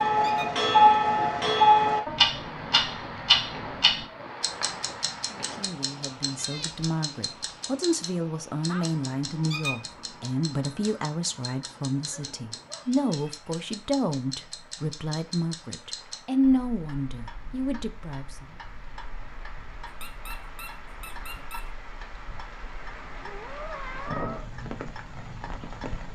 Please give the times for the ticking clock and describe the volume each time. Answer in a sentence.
The ticking clock can be heard from 0.0 to 26.1 s, getting quieter.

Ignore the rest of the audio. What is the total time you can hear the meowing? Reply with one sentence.
You can hear the meowing for 3 seconds altogether.